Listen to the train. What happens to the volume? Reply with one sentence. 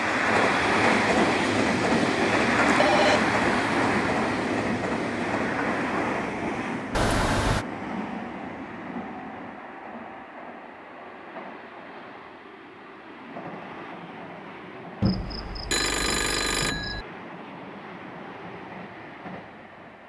The loudness of the train goes down.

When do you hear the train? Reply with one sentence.
You can hear the train from 0.0 to 20.0 s.